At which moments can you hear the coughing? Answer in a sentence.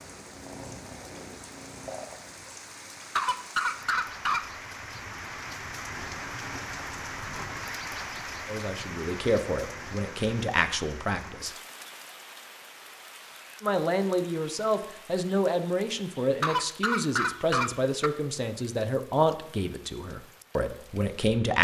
You can hear the coughing from 3.1 to 4.5 s and from 16.4 to 18.1 s.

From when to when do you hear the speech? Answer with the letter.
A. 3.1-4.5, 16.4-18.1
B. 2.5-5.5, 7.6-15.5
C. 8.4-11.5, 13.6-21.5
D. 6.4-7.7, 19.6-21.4
C.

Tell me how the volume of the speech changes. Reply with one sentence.
The volume of the speech stays about the same.